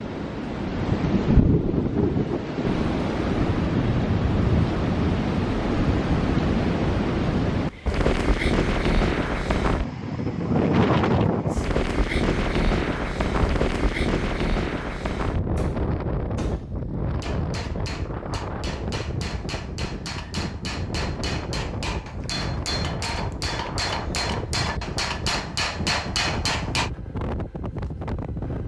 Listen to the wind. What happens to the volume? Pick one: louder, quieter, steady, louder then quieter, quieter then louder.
quieter.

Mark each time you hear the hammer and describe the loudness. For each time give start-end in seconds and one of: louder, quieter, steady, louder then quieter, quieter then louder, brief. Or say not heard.
15.4-26.9 louder.